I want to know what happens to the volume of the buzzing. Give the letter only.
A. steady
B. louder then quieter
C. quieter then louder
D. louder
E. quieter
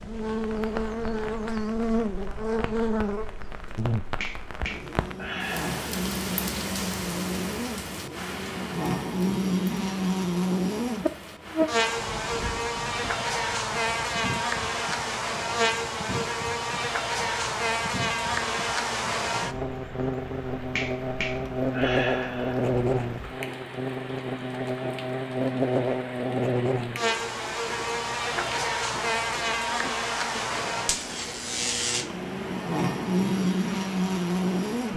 A.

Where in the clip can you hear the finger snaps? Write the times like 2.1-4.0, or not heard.
4.2-5.8, 20.8-22.6.